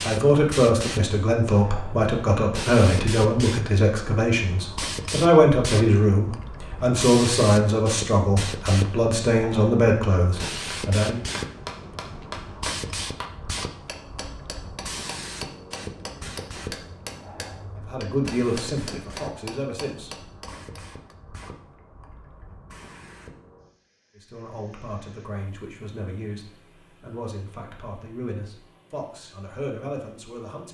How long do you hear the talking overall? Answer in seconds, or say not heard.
20 s.